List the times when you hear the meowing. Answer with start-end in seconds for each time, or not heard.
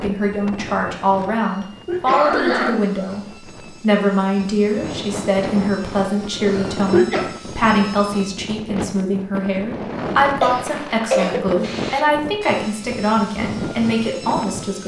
not heard.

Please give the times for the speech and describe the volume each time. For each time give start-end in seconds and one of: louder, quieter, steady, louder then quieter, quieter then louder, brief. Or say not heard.
0.0-14.8 steady.